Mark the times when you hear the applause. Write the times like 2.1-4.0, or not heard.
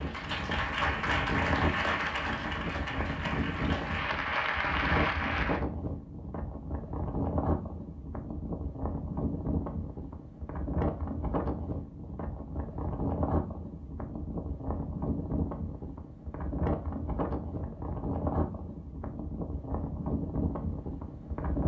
0.0-5.6.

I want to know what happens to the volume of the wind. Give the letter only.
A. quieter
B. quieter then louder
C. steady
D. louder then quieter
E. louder
C.